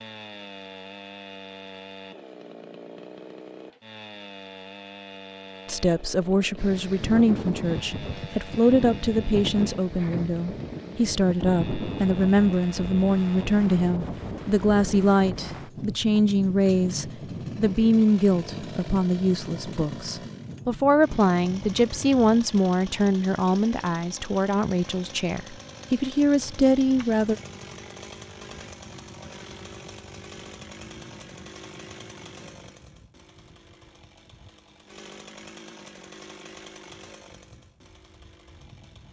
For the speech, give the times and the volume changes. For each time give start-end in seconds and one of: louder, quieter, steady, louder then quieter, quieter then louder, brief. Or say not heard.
5.7-27.4 steady.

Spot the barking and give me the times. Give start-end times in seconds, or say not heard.
not heard.